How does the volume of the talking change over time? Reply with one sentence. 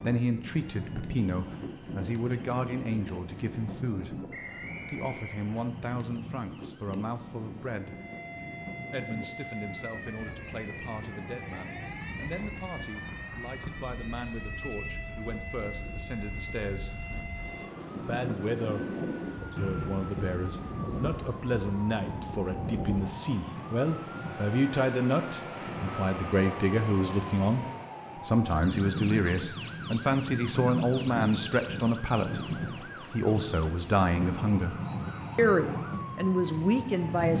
The volume of the talking goes down, then up.